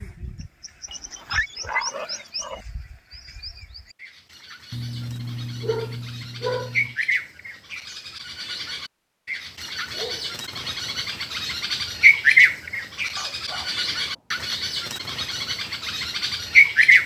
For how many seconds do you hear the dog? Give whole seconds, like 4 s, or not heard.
6 s.